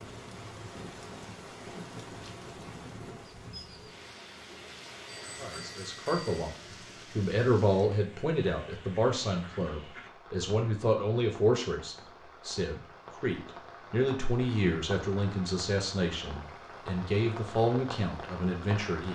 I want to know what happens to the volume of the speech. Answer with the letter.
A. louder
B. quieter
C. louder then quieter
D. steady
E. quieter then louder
D.